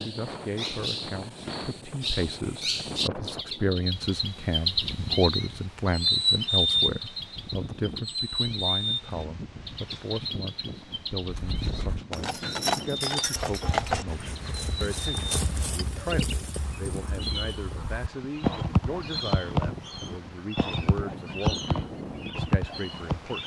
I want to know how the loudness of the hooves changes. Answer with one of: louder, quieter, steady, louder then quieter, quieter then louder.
quieter then louder.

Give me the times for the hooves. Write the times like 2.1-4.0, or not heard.
11.2-23.2.